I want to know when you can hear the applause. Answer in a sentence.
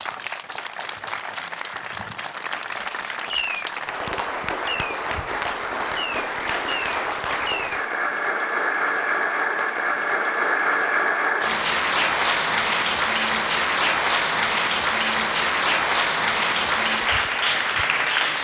You can hear the applause from 0.0 to 18.3 s.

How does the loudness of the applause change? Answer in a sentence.
The volume of the applause goes up.